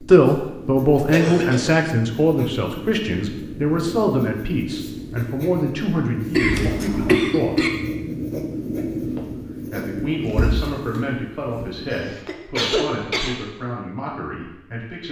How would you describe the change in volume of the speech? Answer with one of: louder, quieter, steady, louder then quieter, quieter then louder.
quieter.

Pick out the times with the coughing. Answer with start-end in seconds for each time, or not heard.
1.1-1.7, 6.3-7.7, 11.9-13.4.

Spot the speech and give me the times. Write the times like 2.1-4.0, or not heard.
0.0-7.5, 9.2-15.0.